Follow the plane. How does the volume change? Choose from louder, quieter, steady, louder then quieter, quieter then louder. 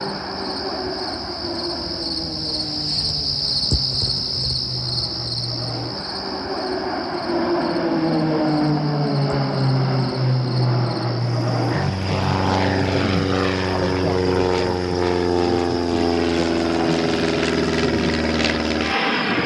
louder.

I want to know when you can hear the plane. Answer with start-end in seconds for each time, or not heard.
0.0-19.4.